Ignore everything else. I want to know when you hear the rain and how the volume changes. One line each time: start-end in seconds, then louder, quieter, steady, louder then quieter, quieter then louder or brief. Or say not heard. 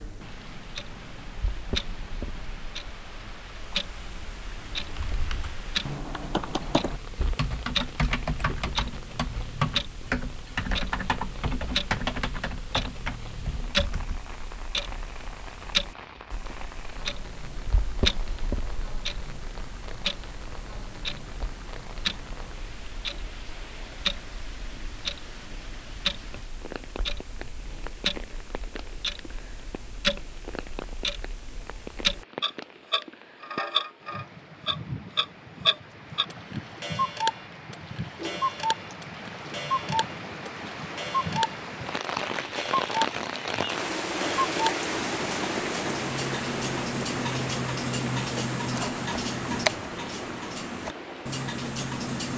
0.0-52.3 louder.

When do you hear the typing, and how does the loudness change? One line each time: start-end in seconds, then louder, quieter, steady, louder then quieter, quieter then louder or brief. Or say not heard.
4.8-14.2 steady.